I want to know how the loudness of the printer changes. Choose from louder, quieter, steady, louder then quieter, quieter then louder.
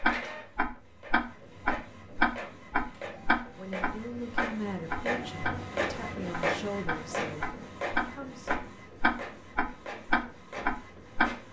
louder then quieter.